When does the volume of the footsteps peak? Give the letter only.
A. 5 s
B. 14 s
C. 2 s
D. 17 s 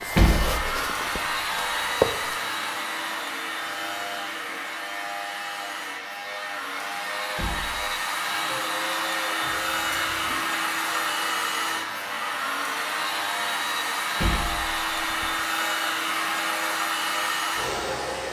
C.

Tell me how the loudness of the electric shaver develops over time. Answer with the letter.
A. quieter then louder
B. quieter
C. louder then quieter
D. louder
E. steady
E.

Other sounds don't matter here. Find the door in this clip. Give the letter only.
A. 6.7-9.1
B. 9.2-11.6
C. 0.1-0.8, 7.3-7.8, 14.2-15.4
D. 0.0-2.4
C.